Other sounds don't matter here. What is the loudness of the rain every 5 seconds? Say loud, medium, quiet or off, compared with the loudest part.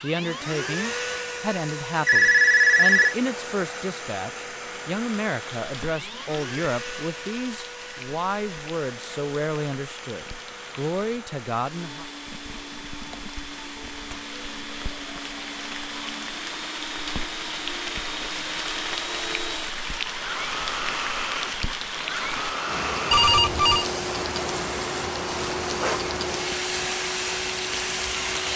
off, medium, medium, loud, loud, loud.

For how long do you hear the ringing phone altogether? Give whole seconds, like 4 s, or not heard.
2 s.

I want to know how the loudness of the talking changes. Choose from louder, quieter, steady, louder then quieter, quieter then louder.
steady.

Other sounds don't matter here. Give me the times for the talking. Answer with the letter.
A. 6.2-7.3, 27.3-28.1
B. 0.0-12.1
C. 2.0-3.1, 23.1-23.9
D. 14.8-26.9
B.